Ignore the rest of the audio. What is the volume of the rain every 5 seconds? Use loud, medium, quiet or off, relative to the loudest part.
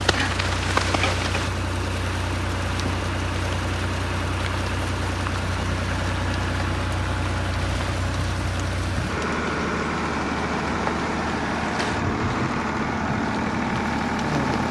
loud, medium, loud.